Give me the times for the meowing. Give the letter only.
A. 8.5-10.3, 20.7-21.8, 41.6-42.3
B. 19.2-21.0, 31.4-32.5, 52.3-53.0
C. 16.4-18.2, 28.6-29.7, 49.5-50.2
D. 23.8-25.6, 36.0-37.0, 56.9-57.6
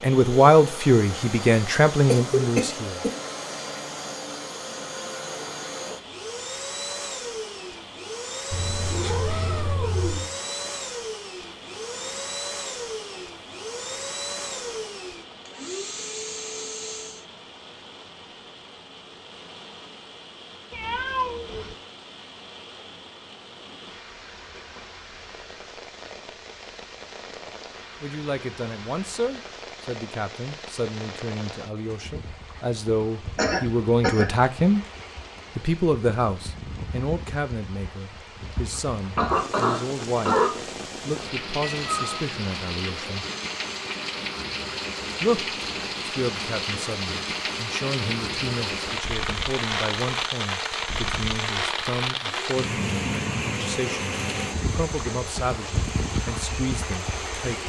A.